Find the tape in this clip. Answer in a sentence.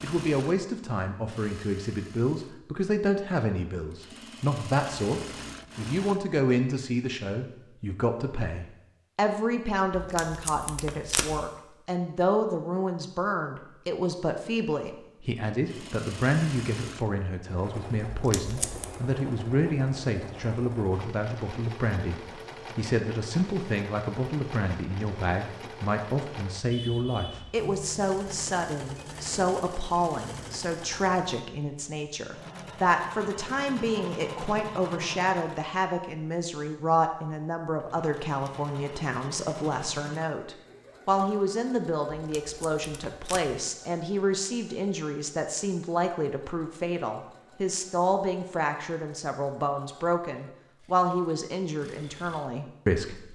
You can hear the tape from 9.9 to 11.5 s, from 18.1 to 18.9 s and from 42.1 to 43.6 s.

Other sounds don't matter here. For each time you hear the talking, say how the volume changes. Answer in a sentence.
You can hear the talking from 0.0 to 53.3 s, at a steady volume.